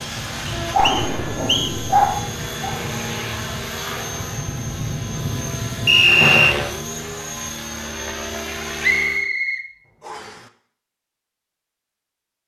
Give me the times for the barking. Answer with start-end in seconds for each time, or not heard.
0.0-2.8.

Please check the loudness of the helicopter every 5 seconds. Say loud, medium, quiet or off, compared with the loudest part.
loud, loud, off.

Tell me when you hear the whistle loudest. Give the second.
6 s.